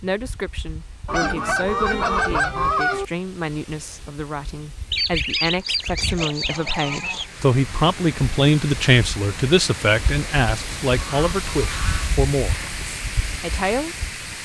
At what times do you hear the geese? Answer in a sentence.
The geese can be heard from 1.1 to 3.0 s, from 4.9 to 7.2 s and from 10.9 to 12.7 s.